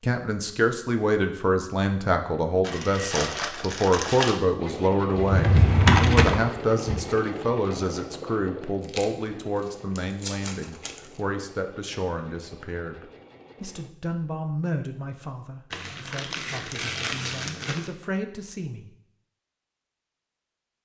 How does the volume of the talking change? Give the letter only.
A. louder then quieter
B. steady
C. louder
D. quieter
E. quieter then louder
D.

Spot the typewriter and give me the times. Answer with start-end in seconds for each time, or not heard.
not heard.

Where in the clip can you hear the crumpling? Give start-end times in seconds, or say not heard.
2.6-4.4, 8.8-11.2, 15.7-17.9.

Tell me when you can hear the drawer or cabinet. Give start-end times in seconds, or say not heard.
5.1-7.0.